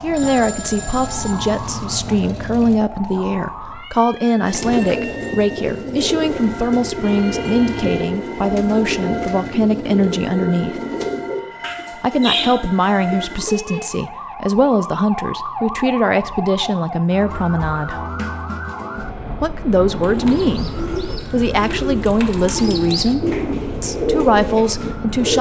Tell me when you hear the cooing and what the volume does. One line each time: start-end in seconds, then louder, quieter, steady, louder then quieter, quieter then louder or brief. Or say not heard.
4.3-13.5 steady
19.9-25.3 louder.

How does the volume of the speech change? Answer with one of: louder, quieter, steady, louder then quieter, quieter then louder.
steady.